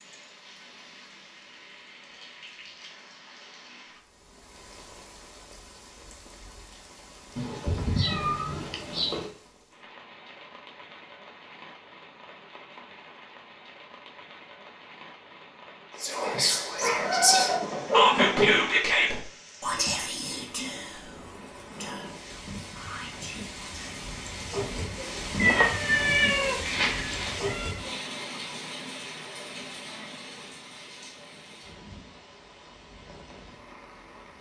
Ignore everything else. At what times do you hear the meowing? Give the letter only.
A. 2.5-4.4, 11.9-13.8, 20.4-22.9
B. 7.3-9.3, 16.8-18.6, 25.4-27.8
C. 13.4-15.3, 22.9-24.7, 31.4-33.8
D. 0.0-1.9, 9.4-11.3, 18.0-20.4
B.